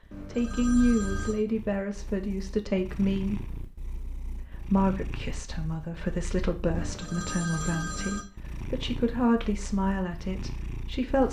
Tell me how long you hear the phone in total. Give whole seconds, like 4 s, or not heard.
3 s.